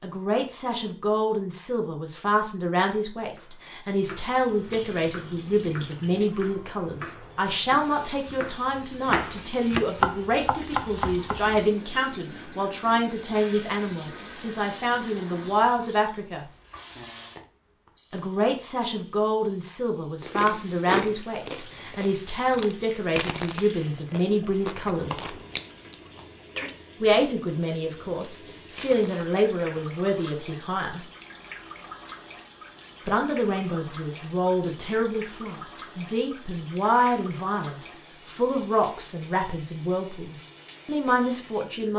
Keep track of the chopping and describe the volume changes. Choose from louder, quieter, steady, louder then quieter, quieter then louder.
louder.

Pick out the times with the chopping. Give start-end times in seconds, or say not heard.
3.4-11.3.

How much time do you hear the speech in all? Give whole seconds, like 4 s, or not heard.
37 s.